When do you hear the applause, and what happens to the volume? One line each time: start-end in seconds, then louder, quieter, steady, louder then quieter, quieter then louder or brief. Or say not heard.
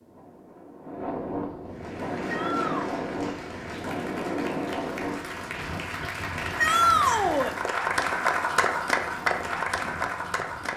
1.6-10.7 louder.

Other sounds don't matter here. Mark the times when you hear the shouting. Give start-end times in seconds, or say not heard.
2.2-2.9, 6.5-7.5.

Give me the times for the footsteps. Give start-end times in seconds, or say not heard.
not heard.